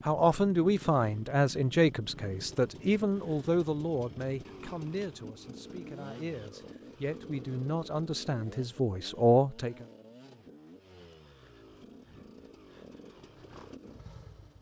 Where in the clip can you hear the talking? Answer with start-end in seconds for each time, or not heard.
0.1-9.8.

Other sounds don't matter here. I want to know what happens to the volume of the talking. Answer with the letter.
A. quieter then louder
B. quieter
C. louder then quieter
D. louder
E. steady
A.